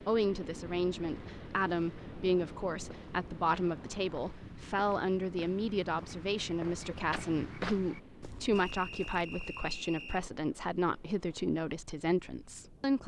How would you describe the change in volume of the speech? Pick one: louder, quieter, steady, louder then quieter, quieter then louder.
steady.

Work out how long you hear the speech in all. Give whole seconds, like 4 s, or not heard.
13 s.